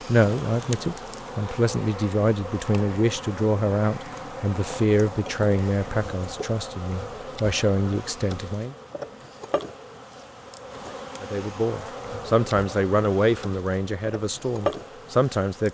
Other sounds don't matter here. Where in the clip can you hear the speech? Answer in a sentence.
You can hear the speech from 0.1 to 8.8 s and from 11.2 to 15.6 s.